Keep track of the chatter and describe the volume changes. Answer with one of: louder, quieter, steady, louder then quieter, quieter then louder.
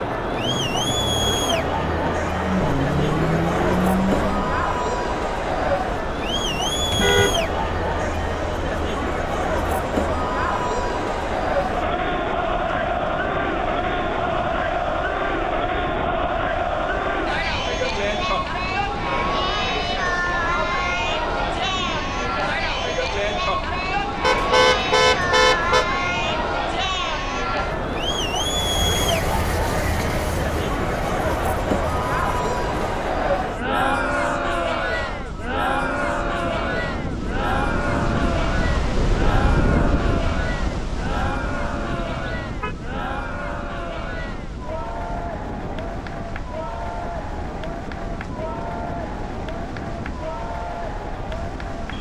quieter.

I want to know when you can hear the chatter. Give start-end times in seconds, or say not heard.
0.0-51.9.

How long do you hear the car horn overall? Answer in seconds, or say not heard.
3 s.